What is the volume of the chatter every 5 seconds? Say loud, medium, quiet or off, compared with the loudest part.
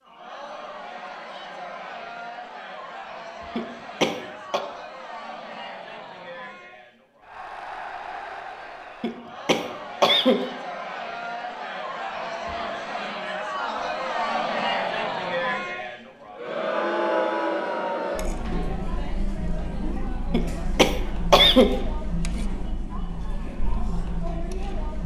medium, medium, loud, loud, medium.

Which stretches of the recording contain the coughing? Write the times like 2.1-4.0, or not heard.
3.5-4.6, 9.0-10.4, 20.3-21.8.